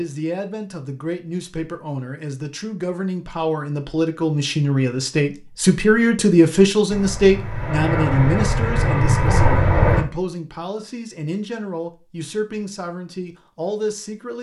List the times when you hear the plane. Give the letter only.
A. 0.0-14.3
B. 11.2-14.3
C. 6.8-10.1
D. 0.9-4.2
C.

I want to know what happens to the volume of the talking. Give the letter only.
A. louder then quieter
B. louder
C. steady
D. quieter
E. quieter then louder
A.